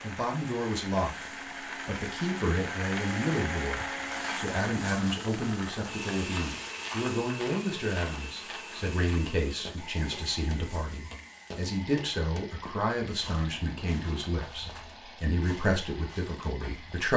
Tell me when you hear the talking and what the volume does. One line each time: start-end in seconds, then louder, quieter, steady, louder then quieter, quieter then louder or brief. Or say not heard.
0.0-17.1 steady.